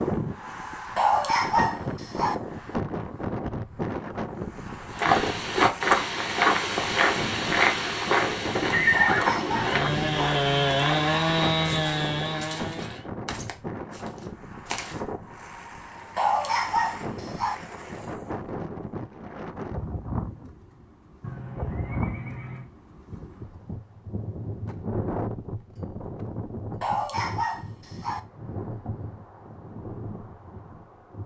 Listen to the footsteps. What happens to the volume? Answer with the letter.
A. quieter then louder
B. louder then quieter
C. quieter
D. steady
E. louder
C.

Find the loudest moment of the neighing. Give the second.
9 s.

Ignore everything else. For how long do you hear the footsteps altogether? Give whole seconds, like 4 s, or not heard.
10 s.